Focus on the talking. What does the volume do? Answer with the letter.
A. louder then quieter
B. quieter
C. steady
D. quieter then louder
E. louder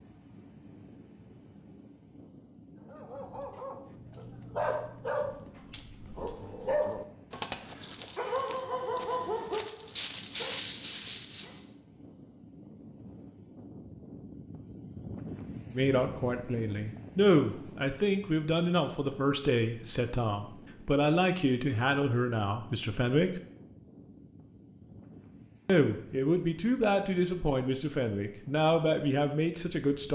C.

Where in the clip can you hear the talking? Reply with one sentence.
The talking can be heard from 15.7 to 23.4 s and from 25.6 to 30.1 s.